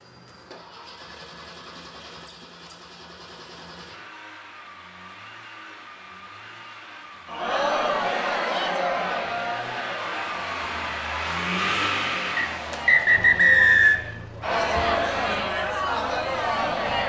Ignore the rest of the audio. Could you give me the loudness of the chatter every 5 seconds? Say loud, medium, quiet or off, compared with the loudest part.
off, loud, medium, loud.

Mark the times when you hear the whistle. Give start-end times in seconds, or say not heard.
12.3-14.0.